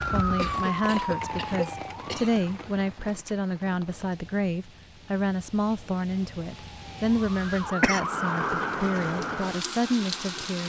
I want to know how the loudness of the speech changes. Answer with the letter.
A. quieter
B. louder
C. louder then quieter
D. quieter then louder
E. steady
E.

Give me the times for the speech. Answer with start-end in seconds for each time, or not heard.
0.1-10.6.